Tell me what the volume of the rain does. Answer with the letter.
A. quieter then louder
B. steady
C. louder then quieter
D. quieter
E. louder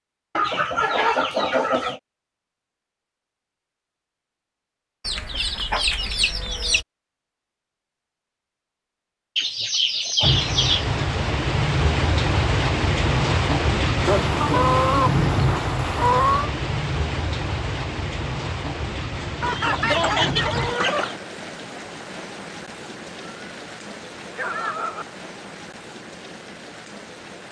D.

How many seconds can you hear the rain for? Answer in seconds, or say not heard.
17 s.